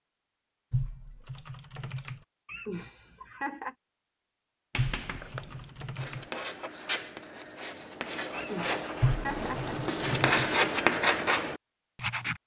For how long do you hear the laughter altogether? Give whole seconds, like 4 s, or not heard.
3 s.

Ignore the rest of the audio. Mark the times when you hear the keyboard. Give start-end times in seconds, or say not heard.
0.7-2.2, 4.8-6.2, 9.0-10.5.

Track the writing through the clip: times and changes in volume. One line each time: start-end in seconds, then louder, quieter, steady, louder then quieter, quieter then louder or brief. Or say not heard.
4.7-12.4 louder.